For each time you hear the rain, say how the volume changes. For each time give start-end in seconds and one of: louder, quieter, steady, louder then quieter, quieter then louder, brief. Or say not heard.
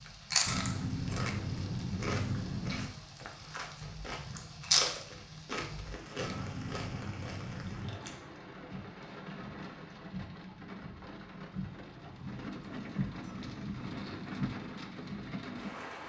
0.0-16.0 louder.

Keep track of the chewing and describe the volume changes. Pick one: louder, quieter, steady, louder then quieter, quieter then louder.
louder then quieter.